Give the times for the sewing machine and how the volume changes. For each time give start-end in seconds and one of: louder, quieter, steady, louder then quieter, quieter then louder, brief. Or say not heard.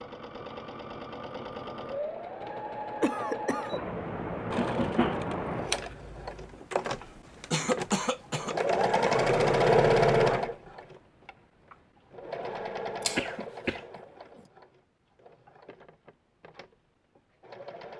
0.0-17.9 louder then quieter.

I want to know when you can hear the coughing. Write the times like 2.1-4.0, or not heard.
3.0-3.8, 7.5-8.6, 13.2-13.8.